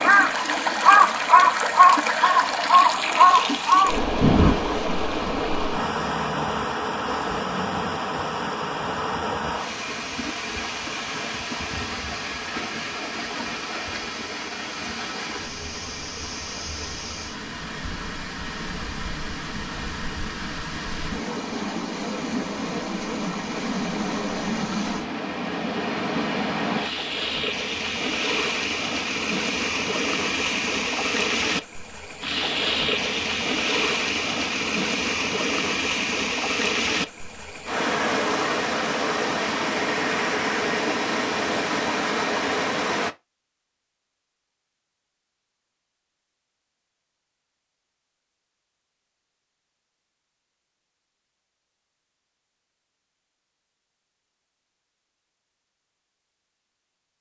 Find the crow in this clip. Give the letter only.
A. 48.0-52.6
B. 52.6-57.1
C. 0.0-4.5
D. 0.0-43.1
C.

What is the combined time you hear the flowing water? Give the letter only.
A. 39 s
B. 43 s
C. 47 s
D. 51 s
B.